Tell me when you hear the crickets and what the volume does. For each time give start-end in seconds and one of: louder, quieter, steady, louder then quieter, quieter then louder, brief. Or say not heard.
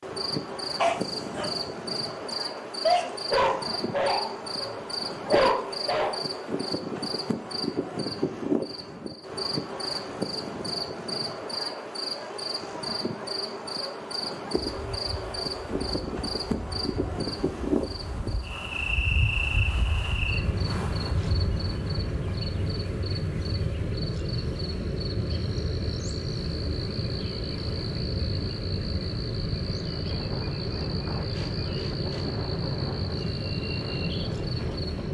0.0-35.0 steady.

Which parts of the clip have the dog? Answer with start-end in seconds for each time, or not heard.
0.8-6.2.